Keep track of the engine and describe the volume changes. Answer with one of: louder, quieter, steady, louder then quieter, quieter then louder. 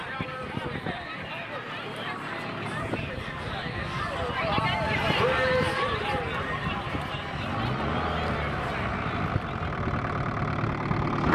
louder.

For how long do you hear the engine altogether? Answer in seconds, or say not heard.
11 s.